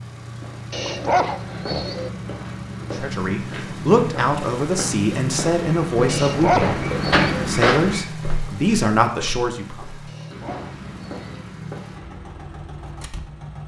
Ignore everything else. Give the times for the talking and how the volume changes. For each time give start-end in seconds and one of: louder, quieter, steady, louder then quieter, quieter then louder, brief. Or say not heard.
2.9-9.8 steady.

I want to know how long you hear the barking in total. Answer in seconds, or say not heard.
4 s.